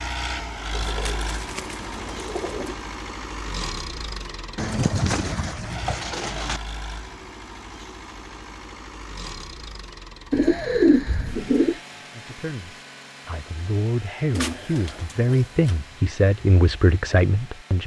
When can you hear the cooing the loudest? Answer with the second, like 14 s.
11 s.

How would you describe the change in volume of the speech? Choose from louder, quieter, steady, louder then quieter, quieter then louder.
louder.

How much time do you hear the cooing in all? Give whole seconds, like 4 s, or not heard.
7 s.